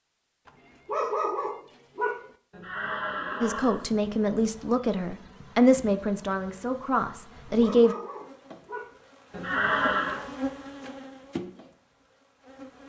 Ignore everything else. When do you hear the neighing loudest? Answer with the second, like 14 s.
10 s.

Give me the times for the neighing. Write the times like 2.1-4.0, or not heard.
2.5-3.9, 9.3-10.2.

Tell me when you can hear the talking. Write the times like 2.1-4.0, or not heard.
3.4-8.0.